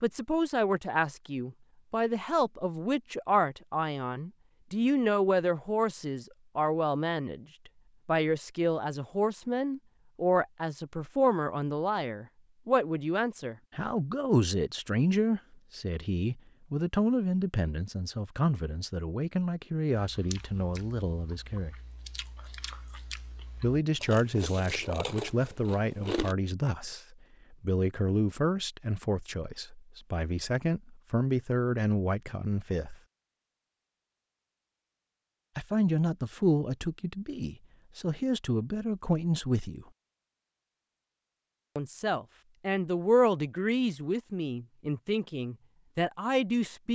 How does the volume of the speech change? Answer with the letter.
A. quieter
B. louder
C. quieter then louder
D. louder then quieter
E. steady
E.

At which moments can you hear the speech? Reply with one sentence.
The speech can be heard from 0.0 to 7.5 s, from 8.1 to 21.8 s, from 23.6 to 33.0 s, from 35.5 to 39.9 s and from 41.8 to 46.8 s.